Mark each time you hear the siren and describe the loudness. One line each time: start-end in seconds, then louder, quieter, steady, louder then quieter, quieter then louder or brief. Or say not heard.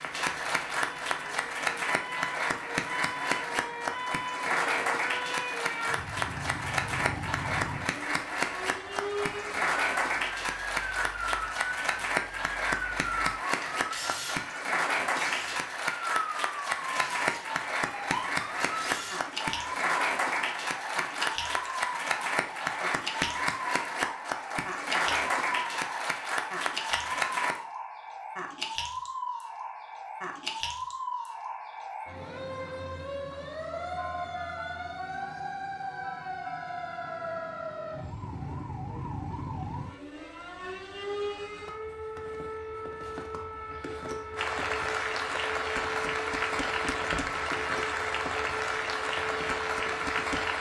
0.0-50.5 steady.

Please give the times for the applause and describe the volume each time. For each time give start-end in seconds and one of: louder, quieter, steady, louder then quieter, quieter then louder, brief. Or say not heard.
0.0-27.6 steady
44.4-50.5 steady.